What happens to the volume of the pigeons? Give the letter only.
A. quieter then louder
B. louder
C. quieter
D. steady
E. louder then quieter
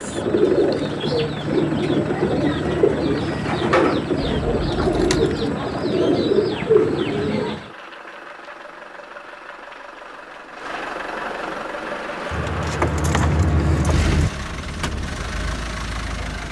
D.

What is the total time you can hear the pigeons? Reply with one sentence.
The pigeons can be heard for 8 seconds in total.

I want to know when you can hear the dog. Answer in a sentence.
You can't hear the dog here.